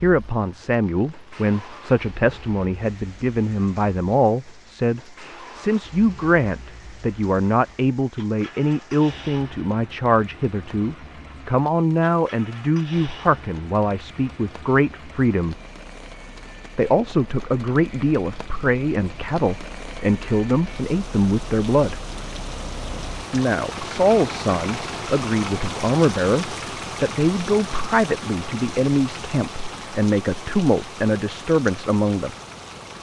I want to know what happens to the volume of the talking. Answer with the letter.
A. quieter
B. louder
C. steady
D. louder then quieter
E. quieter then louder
C.